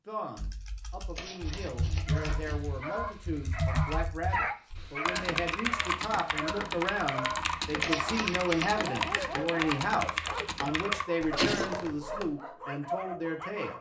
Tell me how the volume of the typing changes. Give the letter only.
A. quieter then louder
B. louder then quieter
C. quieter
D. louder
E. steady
D.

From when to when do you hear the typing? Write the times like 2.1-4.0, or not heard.
0.3-12.3.